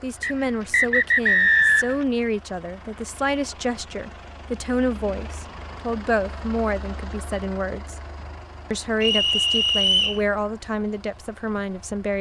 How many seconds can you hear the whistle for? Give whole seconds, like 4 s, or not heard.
3 s.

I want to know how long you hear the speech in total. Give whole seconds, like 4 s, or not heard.
11 s.